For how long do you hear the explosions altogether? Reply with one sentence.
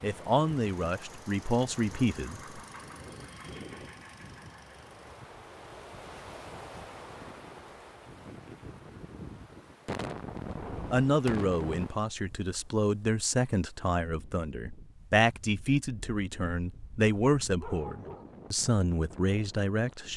You can hear the explosions for 2 seconds altogether.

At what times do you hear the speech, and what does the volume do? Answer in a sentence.
You can hear the speech briefly from 0.0 to 2.4 s; and from 10.9 to 20.1 s, at a steady volume.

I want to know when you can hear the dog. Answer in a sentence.
You can hear the dog from 17.6 to 18.4 s.